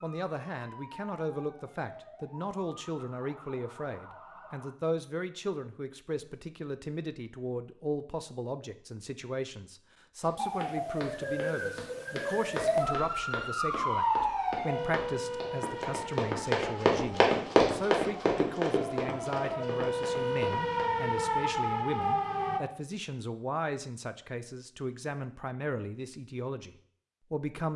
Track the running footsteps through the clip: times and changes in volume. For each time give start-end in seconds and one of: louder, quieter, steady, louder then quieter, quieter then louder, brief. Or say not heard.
10.2-20.9 louder then quieter.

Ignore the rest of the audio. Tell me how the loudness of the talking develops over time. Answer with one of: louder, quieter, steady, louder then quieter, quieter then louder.
steady.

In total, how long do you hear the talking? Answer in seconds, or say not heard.
28 s.